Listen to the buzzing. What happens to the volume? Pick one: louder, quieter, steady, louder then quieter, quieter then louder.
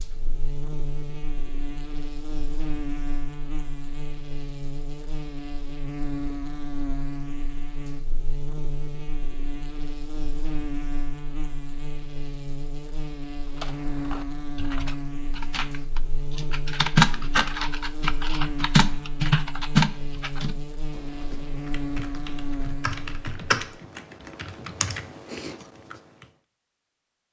steady.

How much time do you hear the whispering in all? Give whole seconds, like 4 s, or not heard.
not heard.